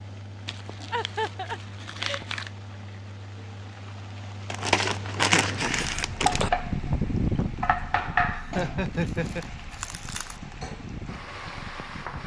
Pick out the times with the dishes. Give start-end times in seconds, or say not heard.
not heard.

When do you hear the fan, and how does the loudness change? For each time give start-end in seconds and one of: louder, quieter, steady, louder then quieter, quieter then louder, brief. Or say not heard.
0.0-12.2 louder then quieter.